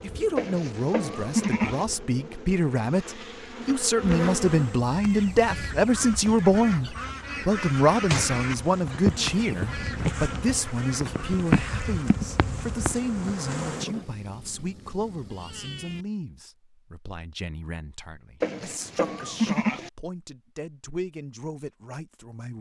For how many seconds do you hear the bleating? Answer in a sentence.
The bleating can be heard for 3 seconds in total.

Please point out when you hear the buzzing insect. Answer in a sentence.
You can hear the buzzing insect from 0.0 to 4.8 s and from 8.3 to 14.1 s.